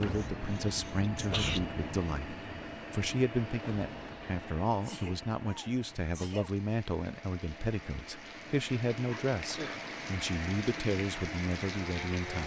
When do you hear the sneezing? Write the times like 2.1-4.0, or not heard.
0.1-1.6, 4.8-6.5, 9.1-9.8.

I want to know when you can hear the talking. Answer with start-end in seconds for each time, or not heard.
0.0-12.4.